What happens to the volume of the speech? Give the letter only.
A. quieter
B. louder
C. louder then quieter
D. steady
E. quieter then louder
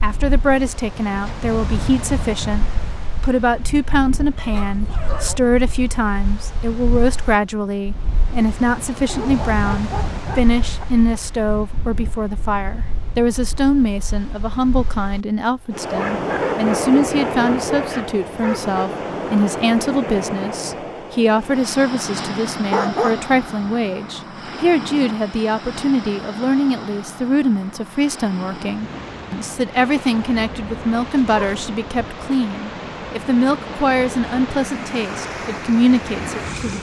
D.